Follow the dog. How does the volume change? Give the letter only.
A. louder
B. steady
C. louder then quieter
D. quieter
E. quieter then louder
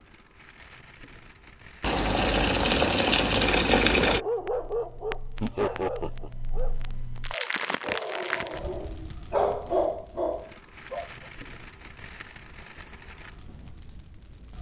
E.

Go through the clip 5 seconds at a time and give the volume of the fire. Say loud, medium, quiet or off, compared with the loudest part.
quiet, loud, medium.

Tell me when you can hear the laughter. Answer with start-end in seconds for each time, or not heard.
5.4-6.3.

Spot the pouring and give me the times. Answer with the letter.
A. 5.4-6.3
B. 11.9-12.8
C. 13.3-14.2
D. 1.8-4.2
D.